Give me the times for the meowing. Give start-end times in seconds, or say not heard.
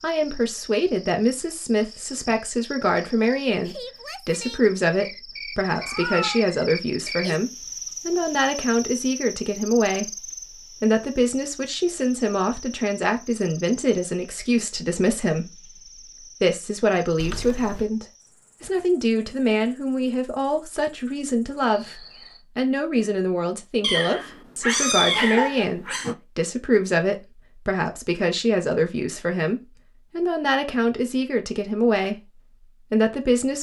5.8-6.5, 17.1-17.9, 23.8-26.1.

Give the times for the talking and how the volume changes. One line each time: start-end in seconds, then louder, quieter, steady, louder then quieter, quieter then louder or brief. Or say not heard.
0.0-15.7 steady
16.4-33.5 steady.